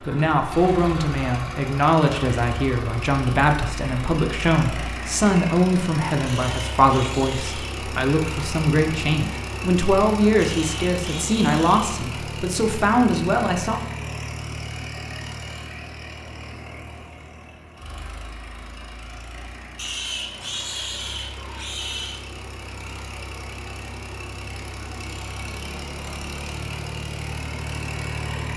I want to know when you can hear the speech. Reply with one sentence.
You can hear the speech from 0.0 to 13.8 s.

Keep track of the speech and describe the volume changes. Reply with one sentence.
The loudness of the speech stays about the same.